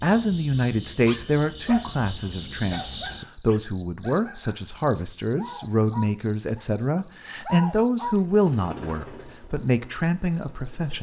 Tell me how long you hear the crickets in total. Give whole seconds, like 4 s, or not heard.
11 s.